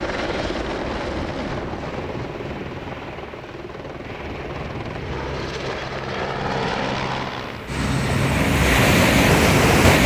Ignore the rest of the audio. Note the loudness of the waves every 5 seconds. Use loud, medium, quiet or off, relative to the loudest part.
quiet, loud.